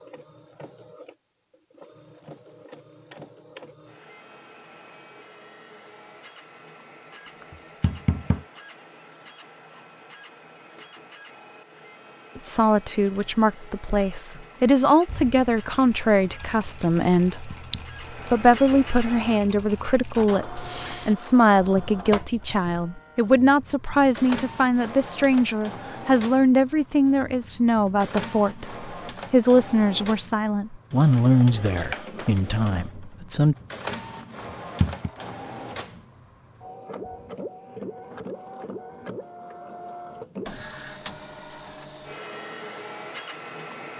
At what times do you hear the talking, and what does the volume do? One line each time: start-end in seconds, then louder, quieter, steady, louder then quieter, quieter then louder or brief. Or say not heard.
12.3-33.5 steady.